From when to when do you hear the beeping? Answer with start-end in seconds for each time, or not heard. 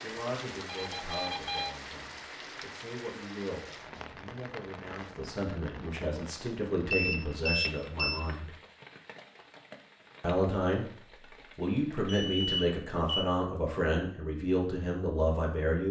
0.7-1.7, 6.9-8.2, 12.1-13.2.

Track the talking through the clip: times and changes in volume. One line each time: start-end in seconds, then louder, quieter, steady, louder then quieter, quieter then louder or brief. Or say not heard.
0.0-8.5 louder
10.2-10.8 brief
11.6-15.8 steady.